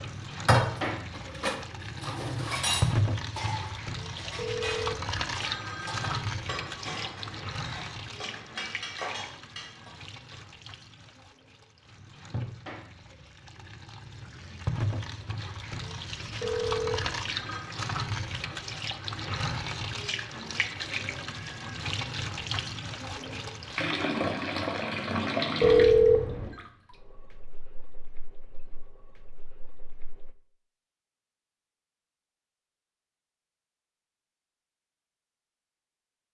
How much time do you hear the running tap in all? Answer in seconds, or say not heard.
30 s.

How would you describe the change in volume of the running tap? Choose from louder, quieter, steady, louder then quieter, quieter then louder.
quieter then louder.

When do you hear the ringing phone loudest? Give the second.
26 s.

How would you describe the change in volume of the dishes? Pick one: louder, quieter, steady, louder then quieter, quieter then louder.
quieter.